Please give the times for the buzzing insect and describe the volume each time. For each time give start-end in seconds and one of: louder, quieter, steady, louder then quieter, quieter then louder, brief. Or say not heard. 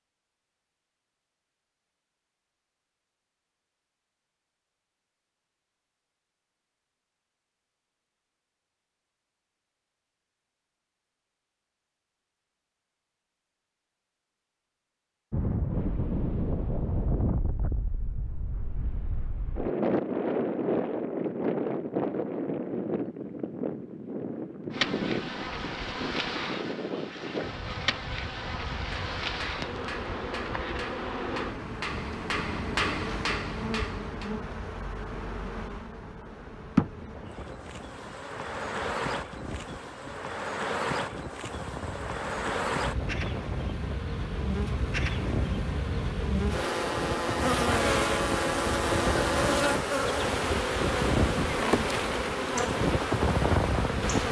24.7-54.2 louder.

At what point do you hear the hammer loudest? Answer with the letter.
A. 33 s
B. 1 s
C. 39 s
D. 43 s
A.